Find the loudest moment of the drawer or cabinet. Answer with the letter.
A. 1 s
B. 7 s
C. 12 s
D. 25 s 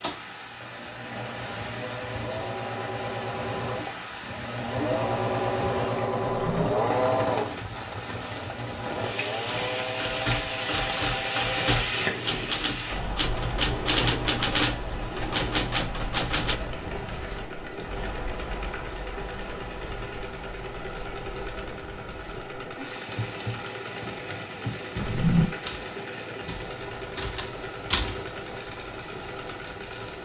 D.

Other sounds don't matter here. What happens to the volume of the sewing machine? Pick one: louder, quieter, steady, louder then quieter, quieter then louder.
quieter.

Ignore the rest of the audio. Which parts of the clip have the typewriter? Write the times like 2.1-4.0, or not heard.
9.4-16.6, 23.1-30.1.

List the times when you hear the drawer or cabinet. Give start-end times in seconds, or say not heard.
6.3-6.7, 24.9-25.5.